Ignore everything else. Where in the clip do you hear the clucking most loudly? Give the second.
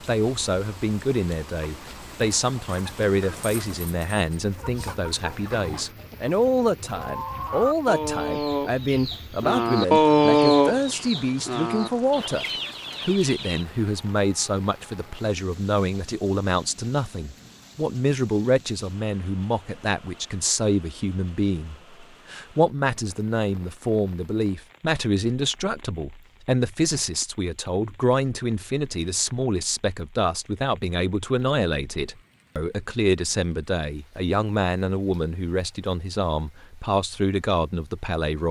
10 s.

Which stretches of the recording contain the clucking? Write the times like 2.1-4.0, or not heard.
1.6-13.7.